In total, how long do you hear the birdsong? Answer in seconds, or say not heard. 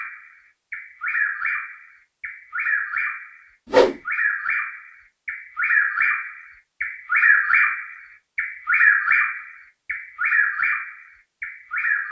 12 s.